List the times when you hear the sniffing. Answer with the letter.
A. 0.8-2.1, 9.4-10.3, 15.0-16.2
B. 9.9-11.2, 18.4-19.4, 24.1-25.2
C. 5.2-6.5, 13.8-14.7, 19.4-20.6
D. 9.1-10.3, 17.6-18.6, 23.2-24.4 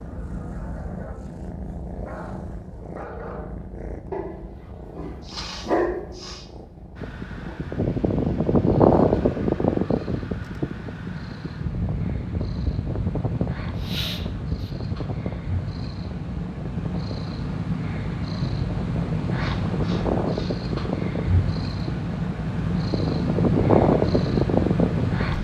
C.